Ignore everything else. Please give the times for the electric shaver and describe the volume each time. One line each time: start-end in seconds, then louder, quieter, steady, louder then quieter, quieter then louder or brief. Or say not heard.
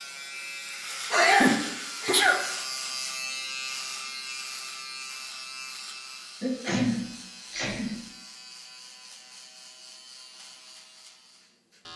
0.0-11.9 quieter.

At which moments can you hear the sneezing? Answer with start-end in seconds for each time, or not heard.
1.1-2.4, 6.4-8.0.